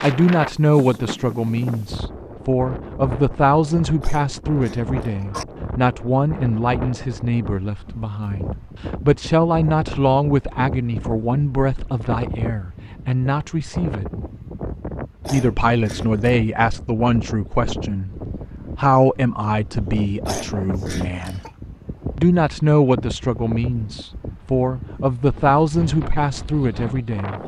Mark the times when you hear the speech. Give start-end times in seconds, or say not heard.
0.0-14.1, 15.3-21.4, 22.1-27.4.